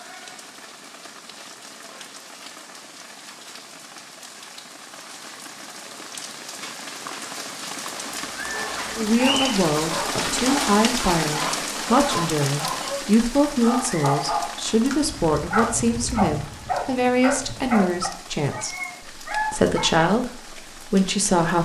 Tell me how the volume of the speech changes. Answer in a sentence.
The volume of the speech stays about the same.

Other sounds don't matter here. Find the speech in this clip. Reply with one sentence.
The speech can be heard from 8.9 to 21.5 s.